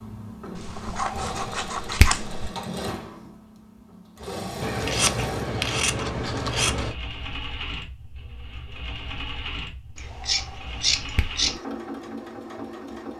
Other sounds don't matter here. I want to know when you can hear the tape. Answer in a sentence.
You can't hear the tape here.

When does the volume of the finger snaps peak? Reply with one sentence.
The loudest moment of the finger snaps is at 2 seconds.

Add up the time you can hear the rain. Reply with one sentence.
The rain can't be heard in this clip.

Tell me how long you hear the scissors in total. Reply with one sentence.
You can hear the scissors for 6 seconds altogether.